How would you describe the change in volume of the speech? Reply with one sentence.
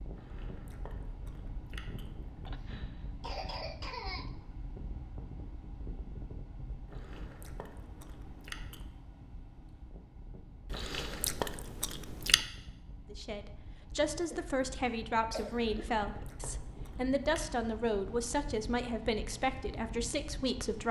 The loudness of the speech stays about the same.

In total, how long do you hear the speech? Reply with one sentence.
The speech can be heard for 8 seconds in total.